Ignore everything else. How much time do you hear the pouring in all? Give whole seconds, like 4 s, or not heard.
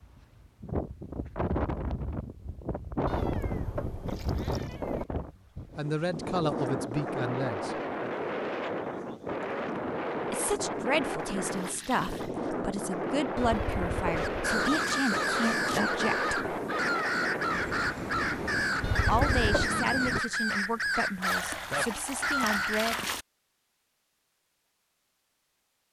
4 s.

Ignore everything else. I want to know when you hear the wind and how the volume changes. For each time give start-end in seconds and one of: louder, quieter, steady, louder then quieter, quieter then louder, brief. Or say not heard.
0.0-20.2 steady.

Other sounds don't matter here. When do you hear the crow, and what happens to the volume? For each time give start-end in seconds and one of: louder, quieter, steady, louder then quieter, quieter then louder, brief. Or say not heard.
14.1-22.9 steady.